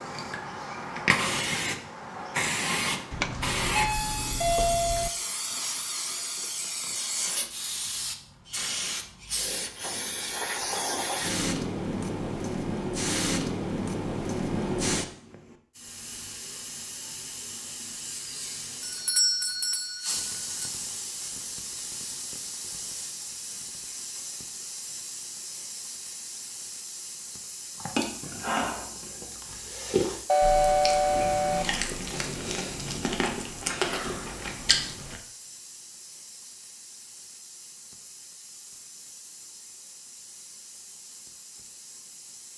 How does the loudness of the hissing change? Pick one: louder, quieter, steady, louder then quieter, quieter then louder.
quieter.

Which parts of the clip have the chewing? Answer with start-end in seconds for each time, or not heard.
27.8-35.2.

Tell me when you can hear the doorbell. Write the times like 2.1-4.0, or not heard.
3.1-5.1, 18.8-20.7, 30.2-31.6.